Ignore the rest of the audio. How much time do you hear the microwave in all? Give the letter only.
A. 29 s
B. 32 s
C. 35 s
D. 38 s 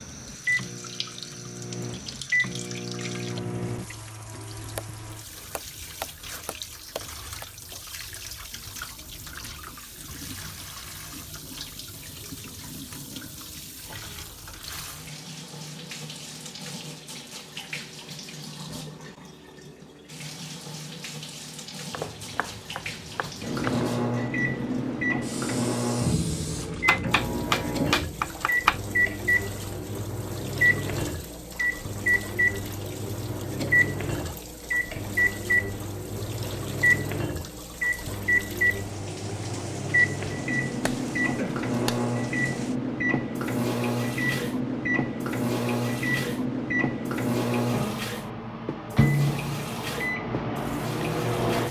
B.